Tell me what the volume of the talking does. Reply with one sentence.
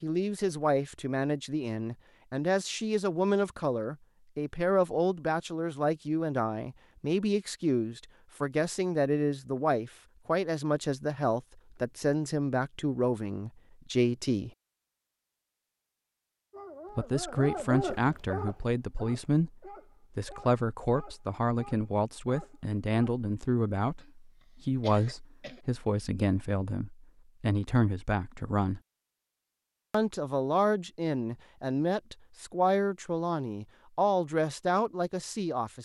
The loudness of the talking stays about the same.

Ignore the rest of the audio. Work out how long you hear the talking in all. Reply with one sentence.
The talking can be heard for 32 seconds in total.